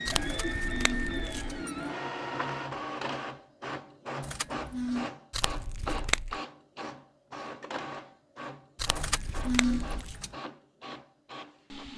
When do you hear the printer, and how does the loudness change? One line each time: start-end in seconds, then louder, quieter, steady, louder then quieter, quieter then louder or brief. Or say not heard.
0.0-11.9 quieter.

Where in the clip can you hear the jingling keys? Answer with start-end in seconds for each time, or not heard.
0.2-1.9, 4.2-5.1, 8.9-10.3.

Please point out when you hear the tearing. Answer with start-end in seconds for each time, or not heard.
0.1-1.6, 5.3-6.4, 8.8-10.2.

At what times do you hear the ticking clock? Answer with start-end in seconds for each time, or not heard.
not heard.